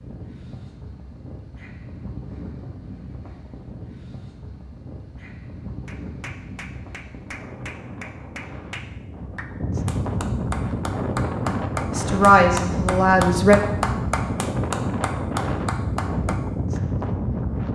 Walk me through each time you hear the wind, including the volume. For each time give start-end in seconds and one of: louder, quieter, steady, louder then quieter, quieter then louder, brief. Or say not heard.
0.0-17.7 louder.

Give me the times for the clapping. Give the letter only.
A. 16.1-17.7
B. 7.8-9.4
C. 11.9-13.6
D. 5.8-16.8
D.